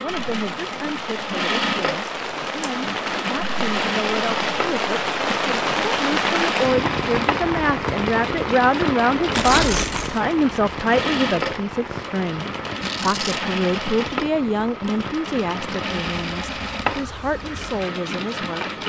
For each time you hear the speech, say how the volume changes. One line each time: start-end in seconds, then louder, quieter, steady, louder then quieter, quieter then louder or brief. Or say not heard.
0.0-18.6 louder then quieter.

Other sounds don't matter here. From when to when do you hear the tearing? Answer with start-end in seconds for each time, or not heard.
2.0-2.7, 9.3-10.2, 12.8-13.4.